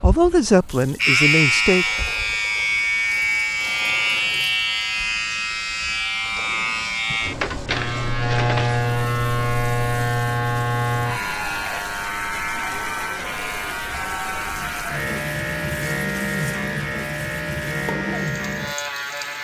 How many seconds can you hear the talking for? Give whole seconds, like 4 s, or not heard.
2 s.